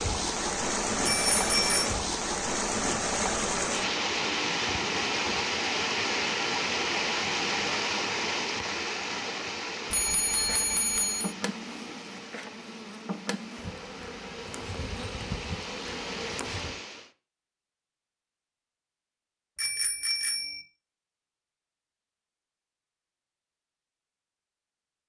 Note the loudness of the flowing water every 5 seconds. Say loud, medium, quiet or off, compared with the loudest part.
loud, loud, quiet, medium, off.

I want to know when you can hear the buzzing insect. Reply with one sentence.
You can hear the buzzing insect from 10.3 to 16.8 s.